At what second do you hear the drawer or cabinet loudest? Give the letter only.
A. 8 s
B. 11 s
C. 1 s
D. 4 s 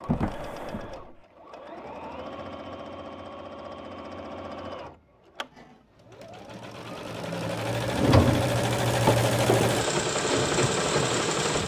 A.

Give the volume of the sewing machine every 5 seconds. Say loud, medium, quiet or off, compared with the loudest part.
quiet, loud, loud.